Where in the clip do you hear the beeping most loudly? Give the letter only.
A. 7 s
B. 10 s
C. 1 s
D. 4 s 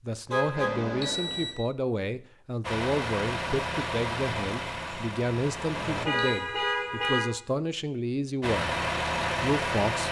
C.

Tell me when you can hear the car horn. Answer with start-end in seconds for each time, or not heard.
0.3-1.1, 5.8-7.3.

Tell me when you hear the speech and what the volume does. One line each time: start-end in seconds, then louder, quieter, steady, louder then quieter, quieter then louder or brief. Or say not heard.
0.0-8.7 steady
9.3-10.0 brief.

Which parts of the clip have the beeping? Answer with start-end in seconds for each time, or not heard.
0.6-1.6, 6.0-6.5.